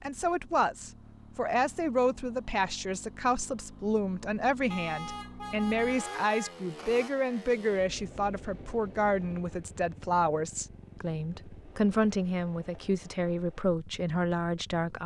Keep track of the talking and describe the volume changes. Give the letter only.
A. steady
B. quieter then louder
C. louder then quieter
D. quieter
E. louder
A.